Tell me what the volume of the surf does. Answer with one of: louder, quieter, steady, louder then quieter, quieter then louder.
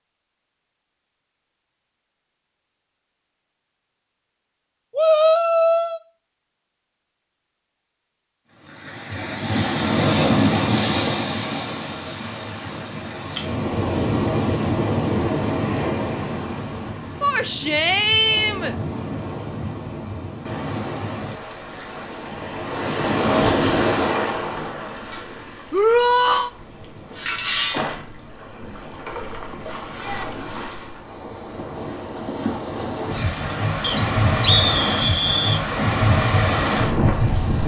quieter then louder.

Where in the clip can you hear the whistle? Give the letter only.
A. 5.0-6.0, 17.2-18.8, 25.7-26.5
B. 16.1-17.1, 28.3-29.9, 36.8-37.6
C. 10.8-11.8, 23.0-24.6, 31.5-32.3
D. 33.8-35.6
D.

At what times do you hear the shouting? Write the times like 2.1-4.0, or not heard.
5.0-6.0, 17.2-18.8, 25.7-26.5.